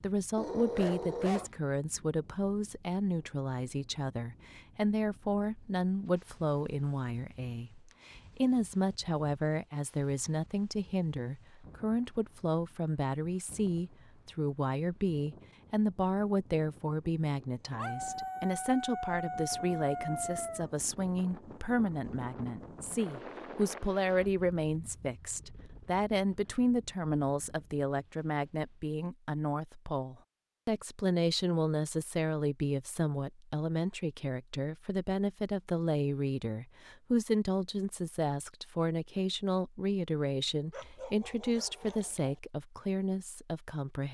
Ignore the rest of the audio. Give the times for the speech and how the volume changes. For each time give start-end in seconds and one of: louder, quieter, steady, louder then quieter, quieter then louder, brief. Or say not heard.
0.0-44.0 steady.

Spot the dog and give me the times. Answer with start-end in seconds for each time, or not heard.
0.3-1.5, 17.8-20.7, 40.7-42.4.